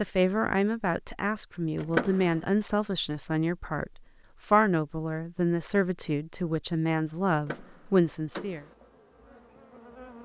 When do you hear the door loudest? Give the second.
2 s.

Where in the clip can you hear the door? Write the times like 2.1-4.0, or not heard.
1.8-2.4, 7.3-8.8.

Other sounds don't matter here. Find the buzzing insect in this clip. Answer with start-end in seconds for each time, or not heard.
8.4-10.2.